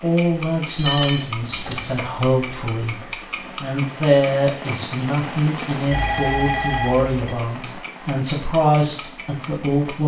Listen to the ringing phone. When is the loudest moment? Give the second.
1 s.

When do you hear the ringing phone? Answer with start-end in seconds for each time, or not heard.
0.8-2.1, 5.9-7.1.